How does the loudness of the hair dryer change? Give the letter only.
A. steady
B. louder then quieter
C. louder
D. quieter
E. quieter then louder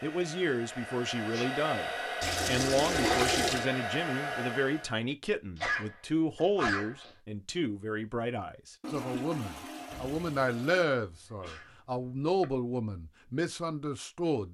C.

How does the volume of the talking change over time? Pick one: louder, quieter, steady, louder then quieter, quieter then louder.
steady.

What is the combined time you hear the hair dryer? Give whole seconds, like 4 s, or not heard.
5 s.